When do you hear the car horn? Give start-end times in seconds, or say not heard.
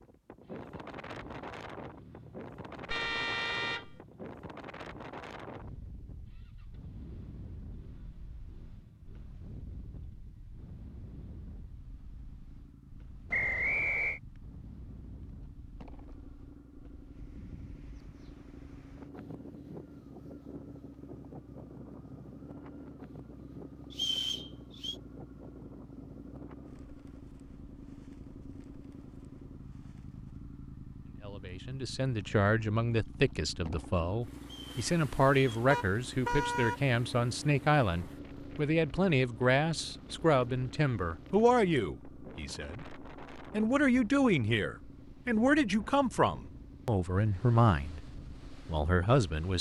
2.9-4.0, 35.7-36.8.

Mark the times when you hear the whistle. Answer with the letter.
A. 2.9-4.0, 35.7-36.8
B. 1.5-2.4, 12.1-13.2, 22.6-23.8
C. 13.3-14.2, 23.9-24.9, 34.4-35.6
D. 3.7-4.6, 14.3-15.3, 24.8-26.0
C.